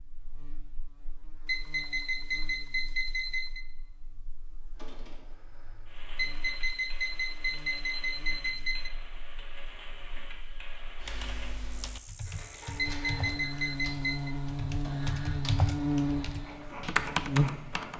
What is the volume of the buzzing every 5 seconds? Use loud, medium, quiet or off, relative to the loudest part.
quiet, quiet, medium, loud.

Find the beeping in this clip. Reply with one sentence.
The beeping can be heard from 1.4 to 3.6 s, from 6.2 to 8.9 s and from 12.8 to 14.3 s.